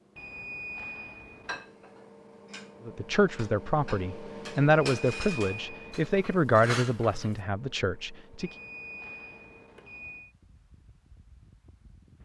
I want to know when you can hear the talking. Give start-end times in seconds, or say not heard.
2.9-8.5.